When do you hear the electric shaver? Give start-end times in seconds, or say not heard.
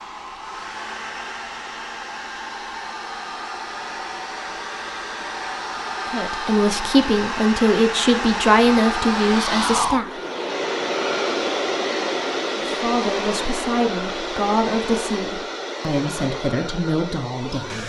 not heard.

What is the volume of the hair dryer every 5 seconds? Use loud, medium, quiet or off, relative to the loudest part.
medium, loud, loud, medium.